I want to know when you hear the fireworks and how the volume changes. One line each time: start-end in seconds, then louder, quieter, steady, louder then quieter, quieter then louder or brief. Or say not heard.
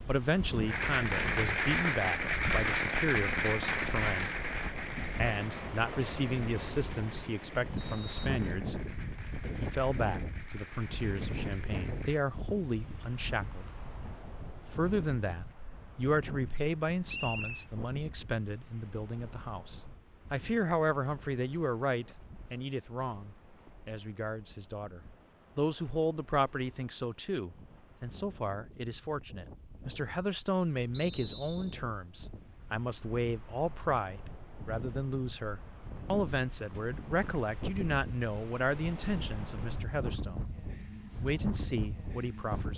0.7-12.2 quieter.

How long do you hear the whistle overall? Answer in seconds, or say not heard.
2 s.